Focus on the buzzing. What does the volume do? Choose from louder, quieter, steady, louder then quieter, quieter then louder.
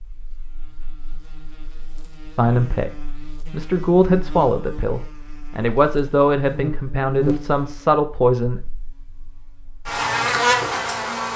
louder.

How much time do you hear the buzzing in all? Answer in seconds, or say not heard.
11 s.